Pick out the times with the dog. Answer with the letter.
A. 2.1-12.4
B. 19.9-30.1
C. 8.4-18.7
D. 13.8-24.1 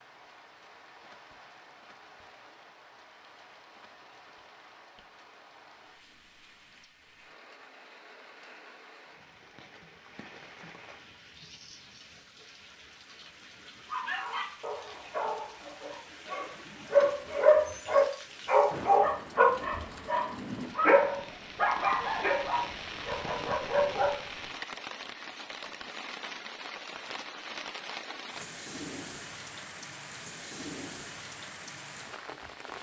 D.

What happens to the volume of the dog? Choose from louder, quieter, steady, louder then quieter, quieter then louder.
louder then quieter.